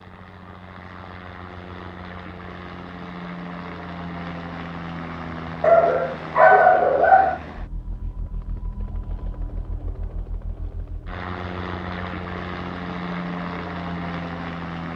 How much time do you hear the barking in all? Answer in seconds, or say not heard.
2 s.